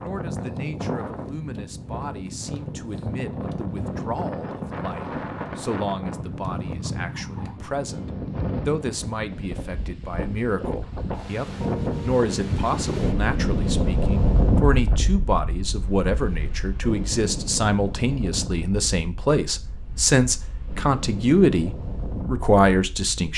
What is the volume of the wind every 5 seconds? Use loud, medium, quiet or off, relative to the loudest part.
medium, medium, loud, medium, medium.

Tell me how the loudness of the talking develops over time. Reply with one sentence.
The loudness of the talking goes up.